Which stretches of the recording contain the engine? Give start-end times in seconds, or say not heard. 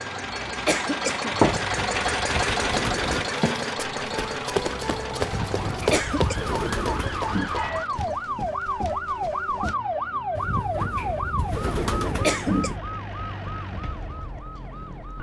0.0-8.3.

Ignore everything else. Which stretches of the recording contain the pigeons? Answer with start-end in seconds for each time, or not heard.
1.6-3.2, 5.2-7.5, 10.3-12.8.